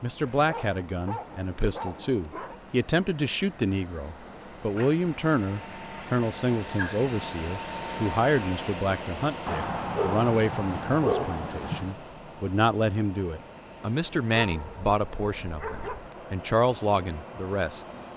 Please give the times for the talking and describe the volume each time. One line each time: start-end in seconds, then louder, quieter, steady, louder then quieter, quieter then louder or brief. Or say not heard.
0.0-17.8 steady.